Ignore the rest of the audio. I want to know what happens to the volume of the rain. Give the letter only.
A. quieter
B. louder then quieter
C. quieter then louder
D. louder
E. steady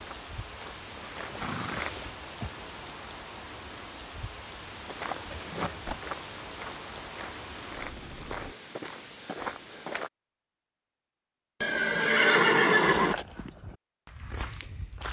E.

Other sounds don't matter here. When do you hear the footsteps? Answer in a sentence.
You can hear the footsteps from 0.0 to 2.1 s, from 4.8 to 10.1 s and from 12.9 to 15.0 s.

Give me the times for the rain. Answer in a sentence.
You can hear the rain from 0.0 to 8.6 s.